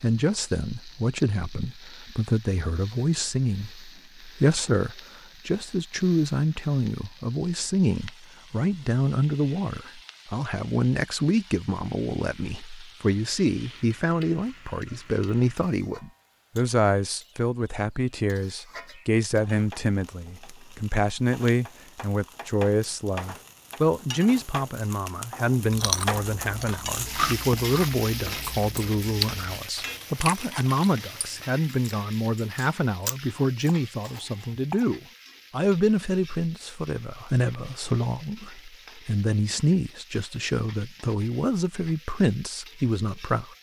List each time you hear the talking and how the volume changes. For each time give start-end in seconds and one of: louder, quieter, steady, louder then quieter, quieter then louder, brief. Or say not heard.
0.0-43.5 steady.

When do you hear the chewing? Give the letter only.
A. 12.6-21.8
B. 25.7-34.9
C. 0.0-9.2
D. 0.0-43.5
B.